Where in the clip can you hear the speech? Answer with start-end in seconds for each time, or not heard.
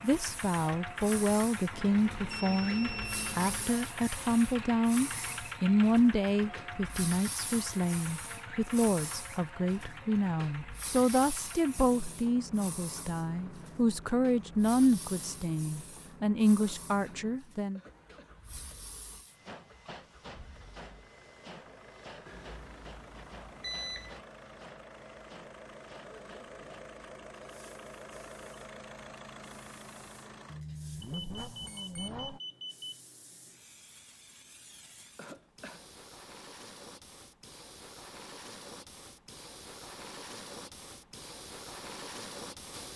0.0-17.8.